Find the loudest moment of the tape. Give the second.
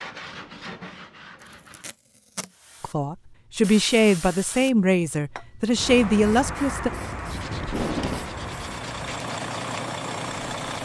8 s.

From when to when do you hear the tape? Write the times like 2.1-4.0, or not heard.
1.7-2.5, 7.6-8.2.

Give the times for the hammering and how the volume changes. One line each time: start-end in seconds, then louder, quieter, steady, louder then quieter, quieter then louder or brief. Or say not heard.
not heard.